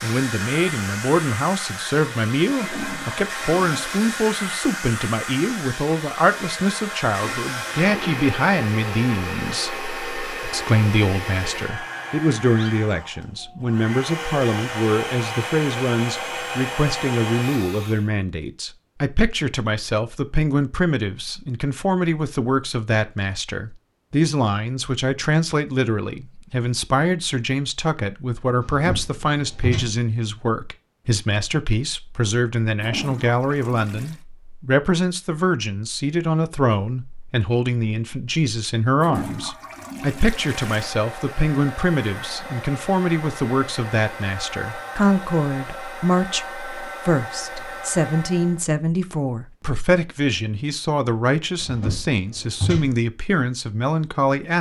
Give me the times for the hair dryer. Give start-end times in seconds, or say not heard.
0.0-18.1, 40.1-48.6.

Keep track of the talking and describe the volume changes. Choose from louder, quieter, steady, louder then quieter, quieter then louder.
steady.